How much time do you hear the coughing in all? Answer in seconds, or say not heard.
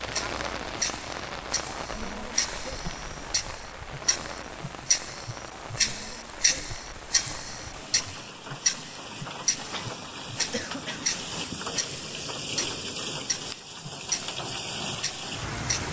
2 s.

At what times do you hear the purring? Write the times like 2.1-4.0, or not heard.
not heard.